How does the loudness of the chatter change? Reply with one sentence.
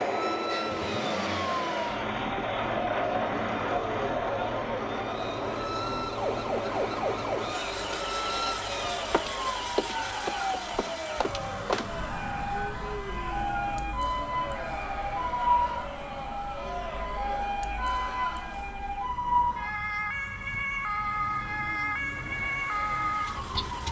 The loudness of the chatter goes down.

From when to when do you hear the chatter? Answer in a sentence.
You can hear the chatter from 0.2 to 18.6 s.